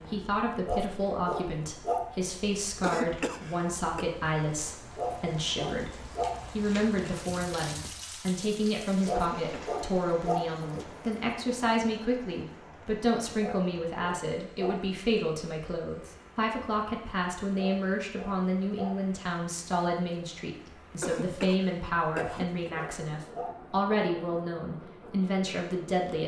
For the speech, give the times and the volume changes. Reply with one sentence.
The speech can be heard from 0.1 to 26.2 s, at a steady volume.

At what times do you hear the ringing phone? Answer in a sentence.
The ringing phone can't be heard in this clip.